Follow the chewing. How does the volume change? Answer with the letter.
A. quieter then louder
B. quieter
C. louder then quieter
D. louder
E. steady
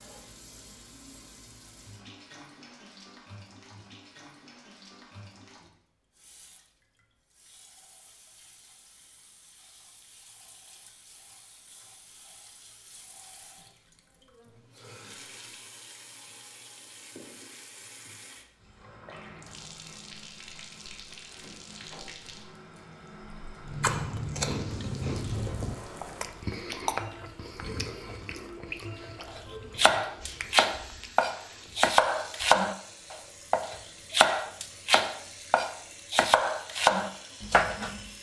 B.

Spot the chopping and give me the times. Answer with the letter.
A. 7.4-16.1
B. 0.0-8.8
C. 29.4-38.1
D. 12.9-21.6
C.